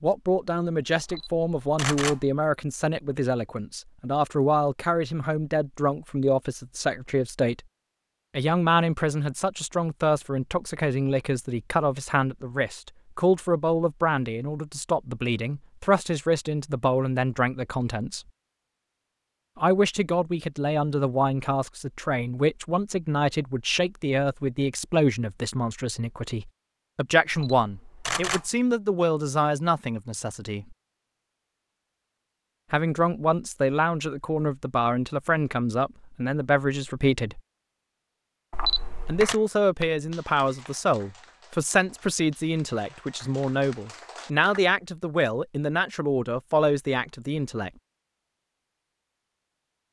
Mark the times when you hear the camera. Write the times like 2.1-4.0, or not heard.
1.1-2.3, 27.3-28.5, 38.5-39.4.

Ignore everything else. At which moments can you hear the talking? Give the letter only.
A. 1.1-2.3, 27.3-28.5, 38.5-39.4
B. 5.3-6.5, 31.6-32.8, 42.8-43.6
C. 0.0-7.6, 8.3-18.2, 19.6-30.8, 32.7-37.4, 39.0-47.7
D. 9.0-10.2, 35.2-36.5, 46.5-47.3
C.